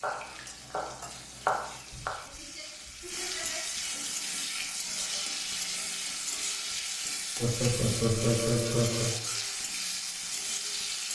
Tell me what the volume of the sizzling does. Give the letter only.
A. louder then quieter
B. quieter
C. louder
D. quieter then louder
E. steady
C.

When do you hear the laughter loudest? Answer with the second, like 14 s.
8 s.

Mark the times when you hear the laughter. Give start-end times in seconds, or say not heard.
1.9-3.8, 7.3-9.2.